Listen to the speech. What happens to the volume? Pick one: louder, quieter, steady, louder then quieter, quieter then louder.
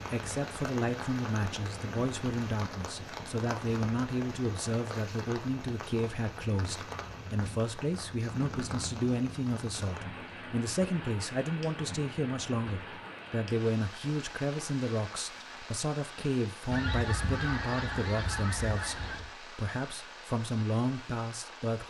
steady.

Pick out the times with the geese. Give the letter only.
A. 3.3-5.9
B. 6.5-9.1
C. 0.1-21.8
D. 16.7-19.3
D.